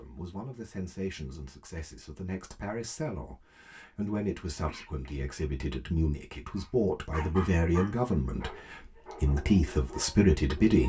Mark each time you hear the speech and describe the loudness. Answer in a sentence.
You can hear the speech from 0.0 to 10.8 s, getting louder.